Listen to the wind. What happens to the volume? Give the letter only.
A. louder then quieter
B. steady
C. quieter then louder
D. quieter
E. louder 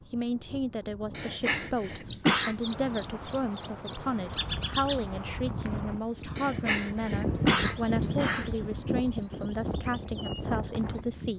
E.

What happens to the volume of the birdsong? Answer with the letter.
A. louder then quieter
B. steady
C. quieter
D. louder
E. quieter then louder
C.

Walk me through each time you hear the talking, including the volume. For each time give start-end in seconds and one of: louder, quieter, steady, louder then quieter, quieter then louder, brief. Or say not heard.
0.1-11.3 steady.